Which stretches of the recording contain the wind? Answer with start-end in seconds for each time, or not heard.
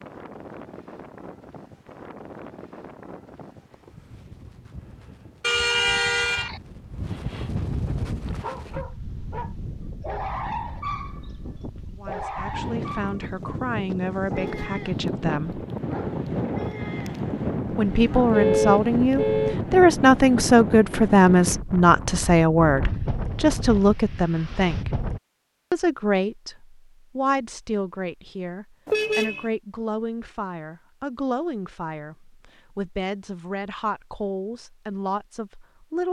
0.0-25.2.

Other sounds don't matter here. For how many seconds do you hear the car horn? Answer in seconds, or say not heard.
3 s.